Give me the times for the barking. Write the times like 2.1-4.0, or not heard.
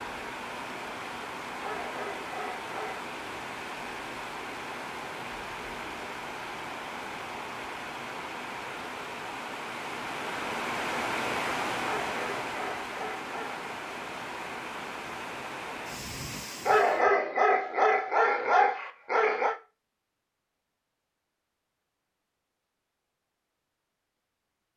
1.6-3.1, 12.1-13.7, 16.6-19.6.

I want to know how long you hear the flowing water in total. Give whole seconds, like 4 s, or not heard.
17 s.